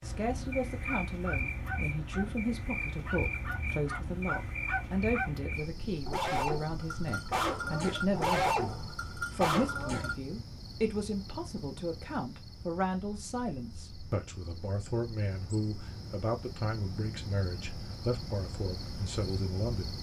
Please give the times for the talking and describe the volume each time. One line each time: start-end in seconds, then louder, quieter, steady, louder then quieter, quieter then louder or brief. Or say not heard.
0.0-19.9 steady.